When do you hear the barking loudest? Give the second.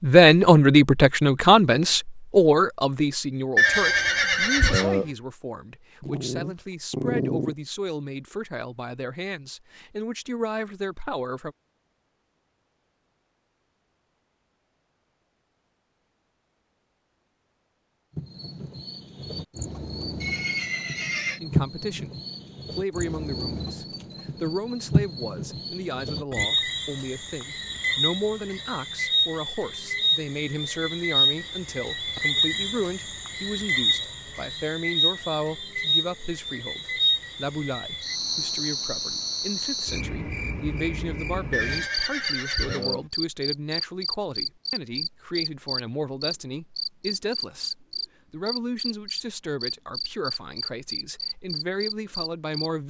7 s.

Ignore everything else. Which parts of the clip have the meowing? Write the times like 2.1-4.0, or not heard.
not heard.